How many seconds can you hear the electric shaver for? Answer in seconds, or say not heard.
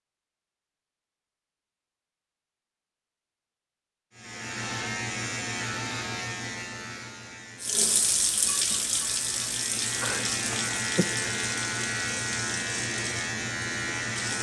10 s.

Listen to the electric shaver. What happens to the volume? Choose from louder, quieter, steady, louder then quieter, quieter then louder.
quieter then louder.